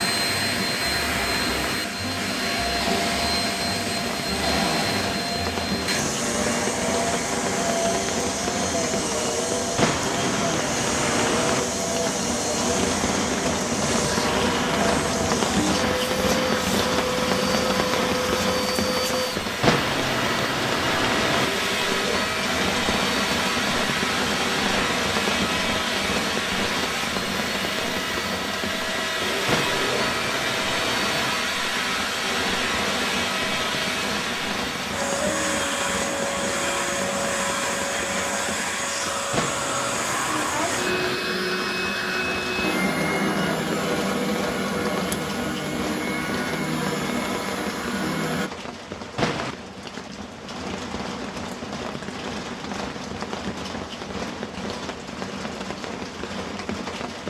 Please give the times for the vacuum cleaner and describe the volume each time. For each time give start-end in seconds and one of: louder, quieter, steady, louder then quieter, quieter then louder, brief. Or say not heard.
0.0-48.5 steady.